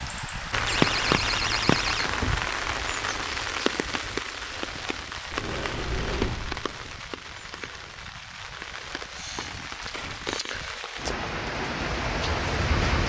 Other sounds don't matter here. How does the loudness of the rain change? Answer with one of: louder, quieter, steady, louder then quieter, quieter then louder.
quieter then louder.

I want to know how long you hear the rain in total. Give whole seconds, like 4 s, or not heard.
13 s.